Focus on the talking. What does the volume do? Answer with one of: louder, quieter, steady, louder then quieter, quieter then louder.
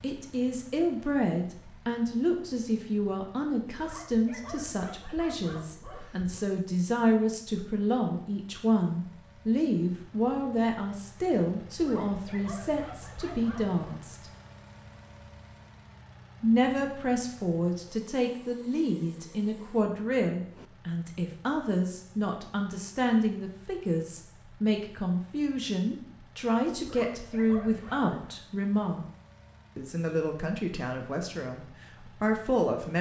steady.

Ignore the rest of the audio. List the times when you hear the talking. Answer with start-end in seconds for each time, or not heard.
0.0-14.3, 16.4-29.1, 29.8-32.9.